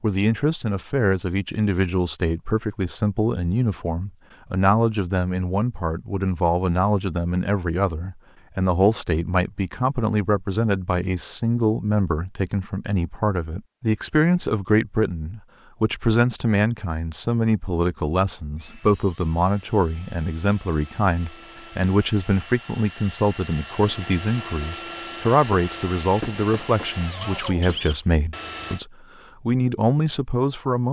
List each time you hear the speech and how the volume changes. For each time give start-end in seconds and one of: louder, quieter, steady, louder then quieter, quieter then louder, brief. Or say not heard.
0.0-30.8 steady.